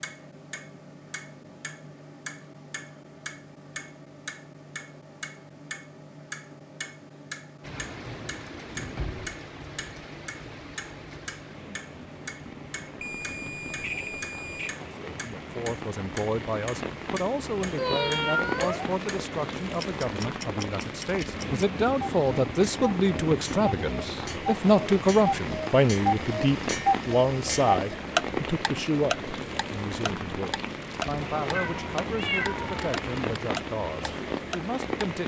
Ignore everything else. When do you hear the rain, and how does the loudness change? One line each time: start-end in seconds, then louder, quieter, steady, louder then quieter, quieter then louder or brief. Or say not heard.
7.6-35.2 louder.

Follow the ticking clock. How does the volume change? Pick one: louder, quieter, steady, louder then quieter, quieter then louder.
louder.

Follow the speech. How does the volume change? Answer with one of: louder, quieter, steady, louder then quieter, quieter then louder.
louder then quieter.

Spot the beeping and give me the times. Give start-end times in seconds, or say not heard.
12.9-14.8.